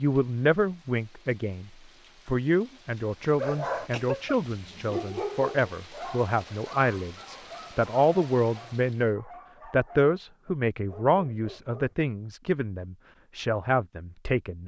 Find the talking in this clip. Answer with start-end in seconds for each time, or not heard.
0.0-14.6.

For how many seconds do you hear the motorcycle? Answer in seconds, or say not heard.
not heard.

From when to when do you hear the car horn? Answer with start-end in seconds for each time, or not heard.
not heard.